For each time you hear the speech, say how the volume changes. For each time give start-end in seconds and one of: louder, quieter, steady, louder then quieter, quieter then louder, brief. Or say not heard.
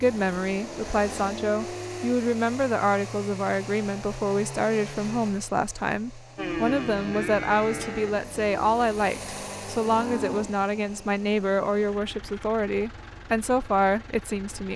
0.0-14.7 steady.